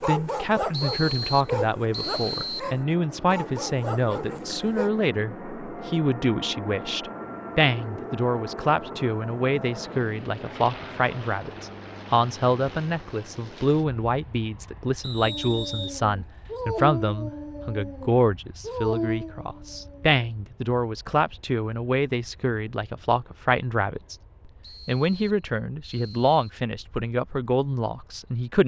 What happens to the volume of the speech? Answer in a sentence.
The loudness of the speech stays about the same.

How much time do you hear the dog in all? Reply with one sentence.
You can hear the dog for 10 seconds altogether.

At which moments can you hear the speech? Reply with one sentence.
The speech can be heard from 0.0 to 24.1 s and from 24.9 to 28.6 s.